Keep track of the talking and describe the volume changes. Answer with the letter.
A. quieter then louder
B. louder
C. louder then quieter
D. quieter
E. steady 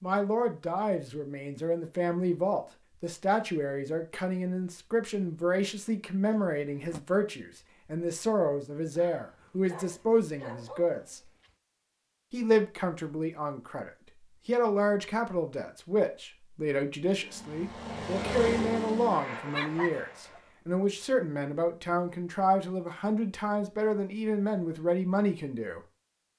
E.